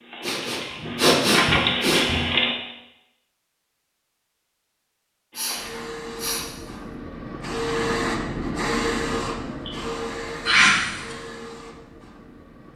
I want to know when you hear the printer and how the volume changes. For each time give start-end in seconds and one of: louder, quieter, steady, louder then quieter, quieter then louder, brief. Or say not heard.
0.0-2.5 brief
5.3-12.7 louder then quieter.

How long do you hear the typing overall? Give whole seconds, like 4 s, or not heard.
not heard.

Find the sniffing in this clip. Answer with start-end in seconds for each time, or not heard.
0.2-2.2, 5.3-6.5, 10.4-11.2.